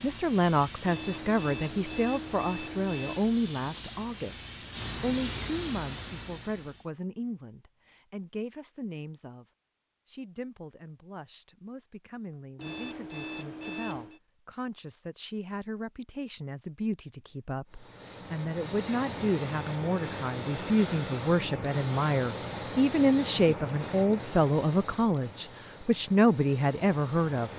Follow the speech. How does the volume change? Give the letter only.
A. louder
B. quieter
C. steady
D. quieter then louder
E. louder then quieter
D.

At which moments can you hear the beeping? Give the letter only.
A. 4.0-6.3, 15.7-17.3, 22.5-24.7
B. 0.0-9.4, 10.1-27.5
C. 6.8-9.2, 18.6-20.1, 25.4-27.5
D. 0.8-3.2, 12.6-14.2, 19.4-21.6
D.